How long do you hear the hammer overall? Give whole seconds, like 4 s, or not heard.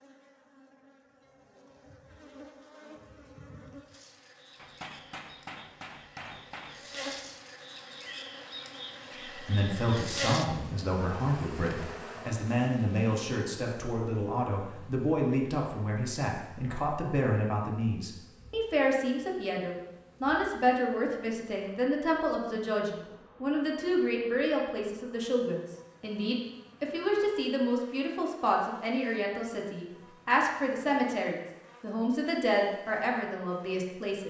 3 s.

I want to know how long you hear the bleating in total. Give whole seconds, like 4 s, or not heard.
not heard.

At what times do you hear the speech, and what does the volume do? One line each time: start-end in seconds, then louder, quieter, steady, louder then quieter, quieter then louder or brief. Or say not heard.
9.2-34.2 steady.